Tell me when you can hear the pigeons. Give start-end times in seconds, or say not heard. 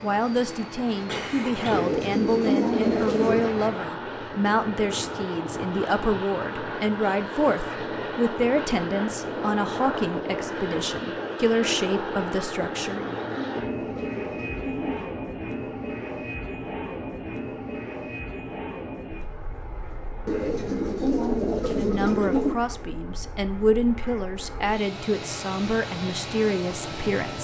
1.7-3.5, 12.8-15.1, 20.2-22.6.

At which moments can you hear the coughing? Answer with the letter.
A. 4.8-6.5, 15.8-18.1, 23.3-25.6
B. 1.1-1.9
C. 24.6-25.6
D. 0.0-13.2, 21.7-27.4
B.